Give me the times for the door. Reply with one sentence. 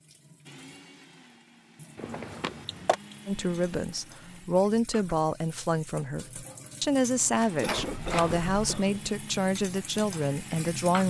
You can hear the door from 1.9 to 3.0 s and from 7.7 to 8.8 s.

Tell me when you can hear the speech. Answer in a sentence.
You can hear the speech from 3.2 to 11.0 s.